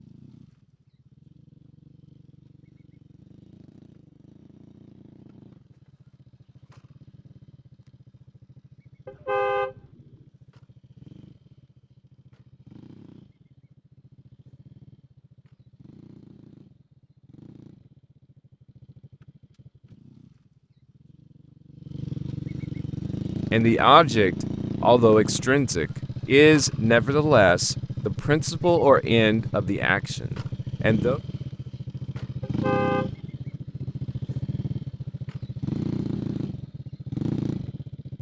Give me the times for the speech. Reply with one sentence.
The speech can be heard from 23.5 to 31.2 s.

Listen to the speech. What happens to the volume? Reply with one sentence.
The loudness of the speech goes down.